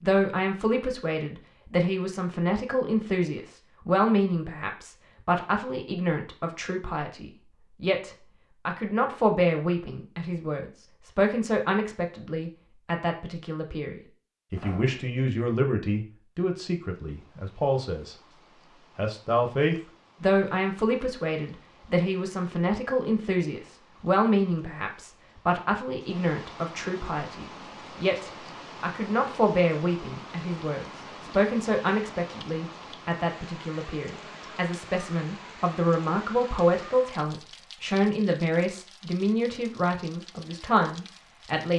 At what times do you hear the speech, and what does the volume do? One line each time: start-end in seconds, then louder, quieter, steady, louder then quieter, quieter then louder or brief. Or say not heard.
0.0-18.1 steady
18.9-41.7 steady.